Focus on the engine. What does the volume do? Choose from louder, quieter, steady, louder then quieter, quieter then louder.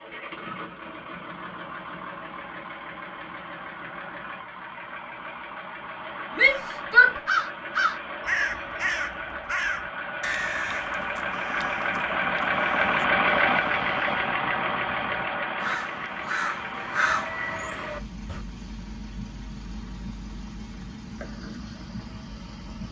louder then quieter.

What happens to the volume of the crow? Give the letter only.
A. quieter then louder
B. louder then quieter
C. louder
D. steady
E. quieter
A.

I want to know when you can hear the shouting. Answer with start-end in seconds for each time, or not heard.
6.3-7.2.